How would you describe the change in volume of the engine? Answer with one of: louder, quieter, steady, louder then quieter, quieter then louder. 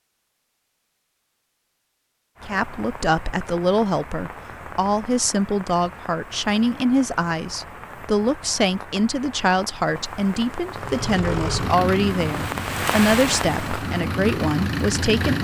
quieter then louder.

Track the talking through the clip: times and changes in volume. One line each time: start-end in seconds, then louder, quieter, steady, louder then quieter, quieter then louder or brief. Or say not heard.
2.5-15.3 steady.